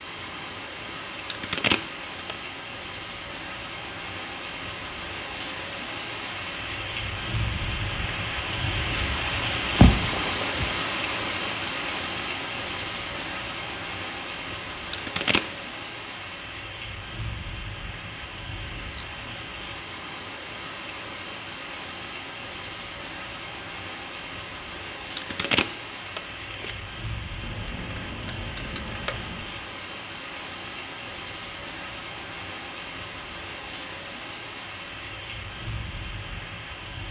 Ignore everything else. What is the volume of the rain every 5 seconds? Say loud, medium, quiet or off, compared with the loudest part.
medium, loud, loud, medium, medium, medium, medium, medium.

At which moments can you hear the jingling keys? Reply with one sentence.
The jingling keys can be heard from 8.9 to 10.7 s, from 17.9 to 19.6 s and from 27.4 to 29.4 s.